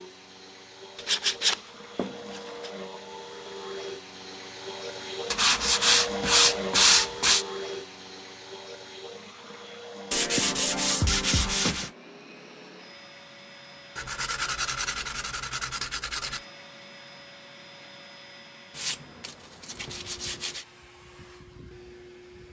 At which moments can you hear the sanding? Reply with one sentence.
The sanding can be heard from 0.9 to 2.7 s, from 5.3 to 7.5 s, from 10.1 to 11.9 s, from 13.9 to 16.4 s and from 18.7 to 20.6 s.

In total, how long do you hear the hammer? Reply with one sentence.
You can't hear the hammer here.